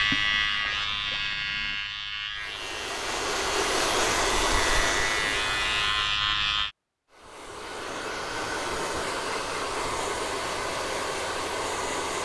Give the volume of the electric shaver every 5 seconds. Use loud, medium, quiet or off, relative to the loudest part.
loud, loud, off.